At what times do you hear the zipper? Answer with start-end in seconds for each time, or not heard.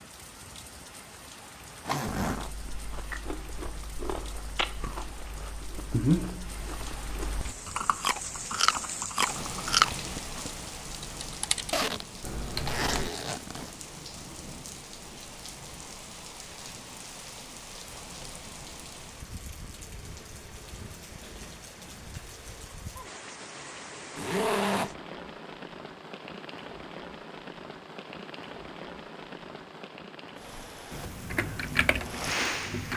1.9-2.5, 11.7-13.7, 24.1-24.9.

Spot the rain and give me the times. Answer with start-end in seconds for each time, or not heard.
0.0-32.9.